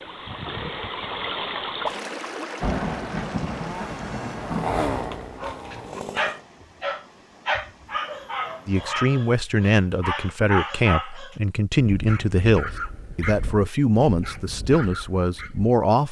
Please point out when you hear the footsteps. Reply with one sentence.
You can't hear the footsteps here.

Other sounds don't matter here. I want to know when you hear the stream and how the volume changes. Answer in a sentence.
You can hear the stream from 0.0 to 8.9 s, getting quieter.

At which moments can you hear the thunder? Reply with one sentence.
The thunder can be heard from 2.6 to 4.9 s.